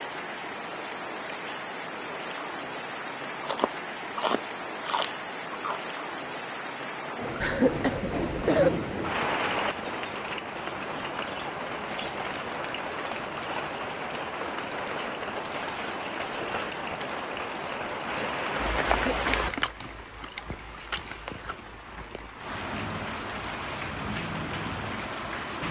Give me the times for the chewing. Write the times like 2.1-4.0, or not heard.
3.4-5.8, 19.2-21.6.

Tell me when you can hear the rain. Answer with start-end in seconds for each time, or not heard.
0.0-25.6.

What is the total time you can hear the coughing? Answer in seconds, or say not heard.
2 s.